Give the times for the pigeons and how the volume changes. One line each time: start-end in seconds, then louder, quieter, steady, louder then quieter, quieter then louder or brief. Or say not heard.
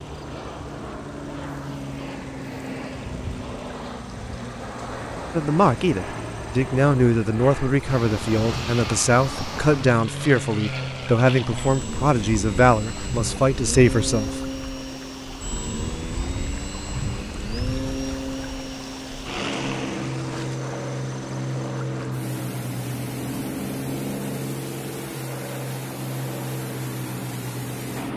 not heard.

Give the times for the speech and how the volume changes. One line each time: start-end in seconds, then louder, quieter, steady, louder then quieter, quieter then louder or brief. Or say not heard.
5.3-14.4 steady.